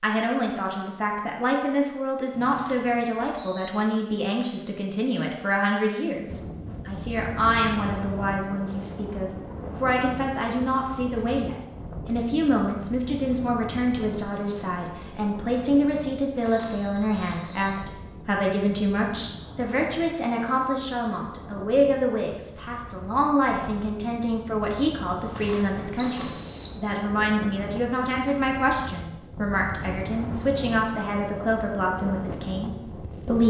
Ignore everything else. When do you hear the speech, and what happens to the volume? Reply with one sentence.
The speech can be heard from 0.0 to 33.4 s, at a steady volume.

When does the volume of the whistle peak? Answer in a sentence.
The volume of the whistle peaks at 26 seconds.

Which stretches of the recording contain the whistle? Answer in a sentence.
The whistle can be heard from 2.3 to 3.7 s, from 16.6 to 17.8 s and from 25.9 to 26.8 s.